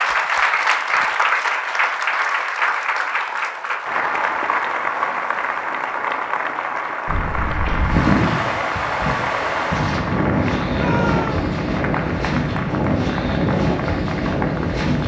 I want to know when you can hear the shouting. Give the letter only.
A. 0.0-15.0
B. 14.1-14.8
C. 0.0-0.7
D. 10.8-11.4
D.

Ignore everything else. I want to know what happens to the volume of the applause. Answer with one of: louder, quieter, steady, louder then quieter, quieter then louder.
quieter.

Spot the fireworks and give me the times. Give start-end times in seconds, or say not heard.
not heard.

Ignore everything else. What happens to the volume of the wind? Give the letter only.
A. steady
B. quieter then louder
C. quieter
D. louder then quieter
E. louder
A.